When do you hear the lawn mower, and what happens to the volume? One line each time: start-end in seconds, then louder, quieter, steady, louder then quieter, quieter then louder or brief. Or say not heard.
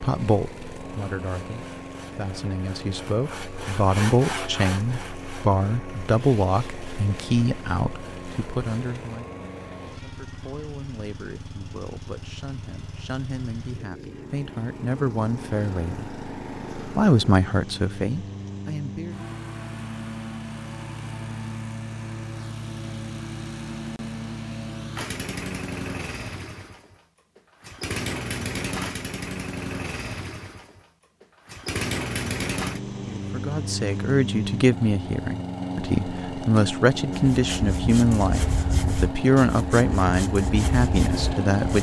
0.0-41.7 louder.